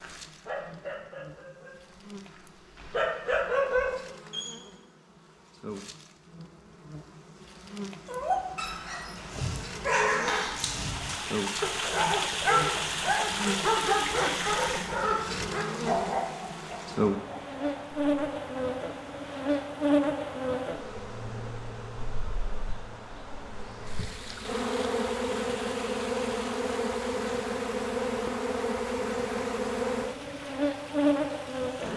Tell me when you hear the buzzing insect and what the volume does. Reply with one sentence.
You can hear the buzzing insect from 0.0 to 31.9 s, getting louder.